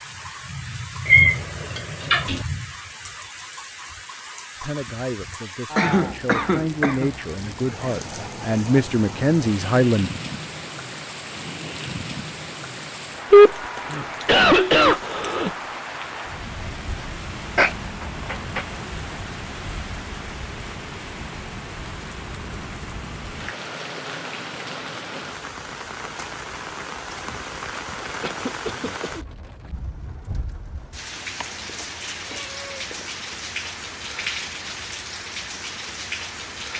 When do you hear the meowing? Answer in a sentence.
The meowing can be heard from 1.1 to 2.5 s, from 17.6 to 18.6 s and from 31.4 to 33.1 s.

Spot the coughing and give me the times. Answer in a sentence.
The coughing can be heard from 5.8 to 7.1 s, from 13.3 to 15.5 s and from 28.2 to 29.1 s.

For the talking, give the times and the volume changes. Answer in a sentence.
The talking can be heard from 4.6 to 10.1 s, getting louder.